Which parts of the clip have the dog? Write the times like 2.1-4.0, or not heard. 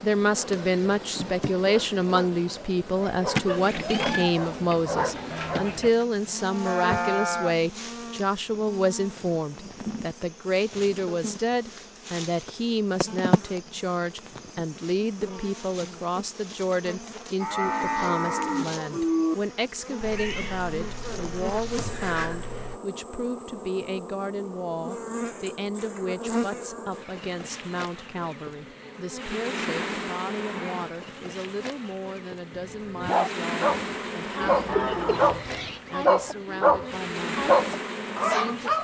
0.2-5.9, 32.5-38.7.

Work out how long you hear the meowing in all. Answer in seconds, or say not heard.
5 s.